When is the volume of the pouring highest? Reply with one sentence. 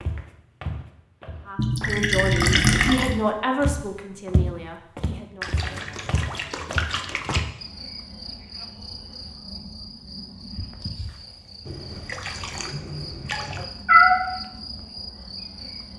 The loudest moment of the pouring is at 3 seconds.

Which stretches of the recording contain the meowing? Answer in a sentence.
You can hear the meowing from 13.3 to 14.3 s.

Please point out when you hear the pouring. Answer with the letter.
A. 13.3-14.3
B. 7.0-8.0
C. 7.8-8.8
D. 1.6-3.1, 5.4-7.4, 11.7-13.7
D.